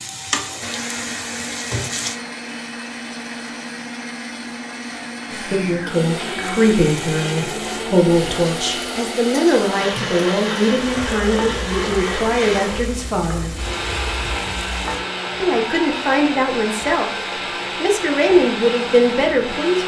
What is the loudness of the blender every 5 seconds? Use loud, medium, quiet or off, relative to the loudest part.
medium, loud, loud, loud.